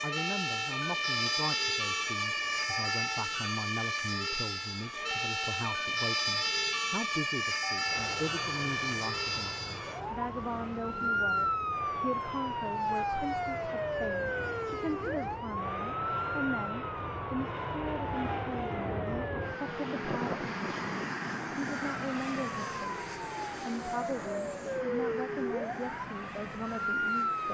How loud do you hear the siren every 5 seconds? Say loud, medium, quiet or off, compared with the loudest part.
loud, loud, loud, medium, medium, loud.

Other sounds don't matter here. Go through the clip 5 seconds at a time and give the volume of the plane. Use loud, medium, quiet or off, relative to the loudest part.
quiet, medium, medium, loud, loud, medium.